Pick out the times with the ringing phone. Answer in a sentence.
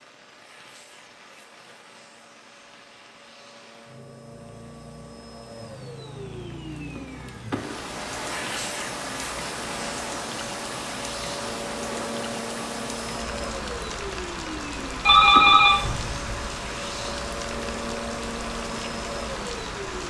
The ringing phone can be heard from 15.1 to 16.2 s.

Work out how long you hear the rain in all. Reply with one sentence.
The rain can be heard for 20 seconds in total.